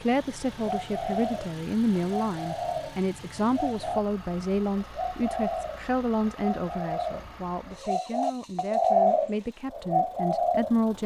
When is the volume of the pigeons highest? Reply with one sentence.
The loudest moment of the pigeons is at 9 seconds.